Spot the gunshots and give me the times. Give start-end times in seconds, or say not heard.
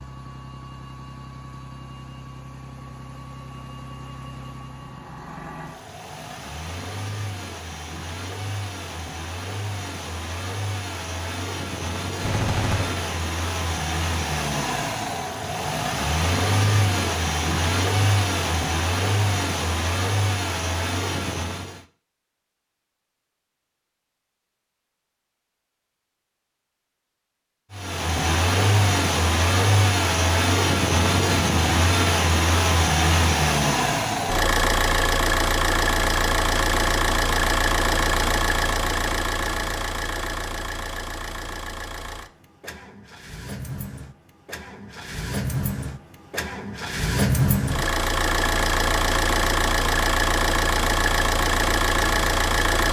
12.2-13.1.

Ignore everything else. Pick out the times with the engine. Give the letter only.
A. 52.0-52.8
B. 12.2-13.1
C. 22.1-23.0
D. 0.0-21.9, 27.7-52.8
D.